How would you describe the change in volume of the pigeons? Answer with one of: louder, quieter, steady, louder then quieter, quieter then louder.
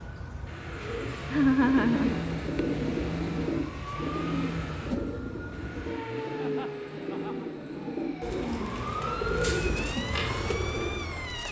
quieter then louder.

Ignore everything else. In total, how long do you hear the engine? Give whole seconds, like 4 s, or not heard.
11 s.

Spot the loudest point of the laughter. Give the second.
2 s.